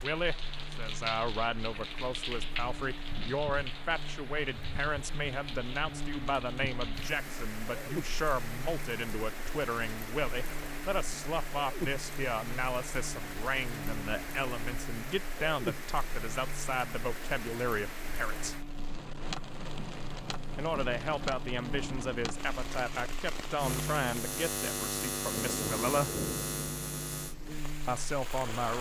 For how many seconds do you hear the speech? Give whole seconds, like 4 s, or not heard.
25 s.